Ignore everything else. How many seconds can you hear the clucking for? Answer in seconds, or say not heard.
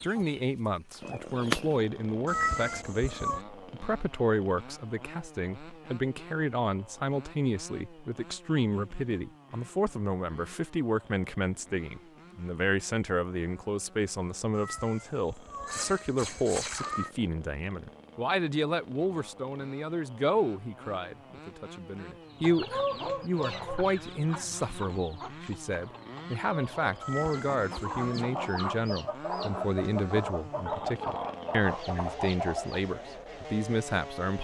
12 s.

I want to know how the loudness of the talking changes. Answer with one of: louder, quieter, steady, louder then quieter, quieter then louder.
steady.